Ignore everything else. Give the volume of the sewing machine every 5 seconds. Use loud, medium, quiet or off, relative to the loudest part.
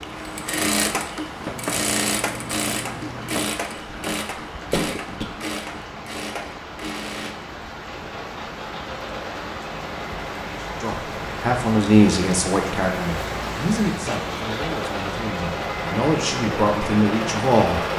loud, medium, medium, loud.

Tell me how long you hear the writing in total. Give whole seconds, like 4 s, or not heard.
2 s.